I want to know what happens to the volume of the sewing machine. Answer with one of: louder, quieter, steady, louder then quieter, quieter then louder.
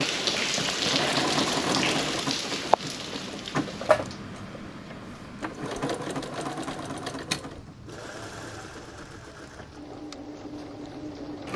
quieter.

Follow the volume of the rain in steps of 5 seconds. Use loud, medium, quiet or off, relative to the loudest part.
loud, quiet, quiet.